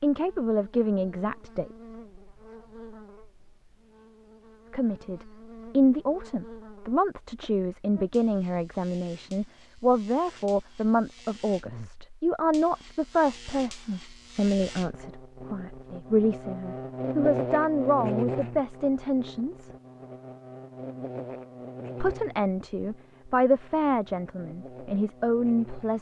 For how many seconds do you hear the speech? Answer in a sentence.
The speech can be heard for 21 seconds in total.